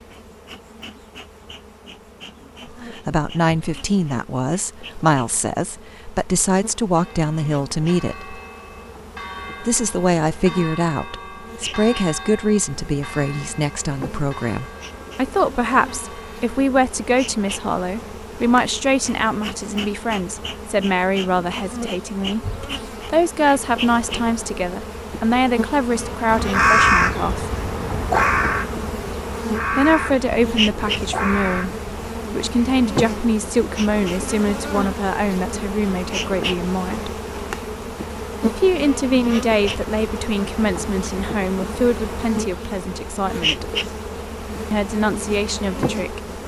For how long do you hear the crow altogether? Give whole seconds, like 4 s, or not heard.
6 s.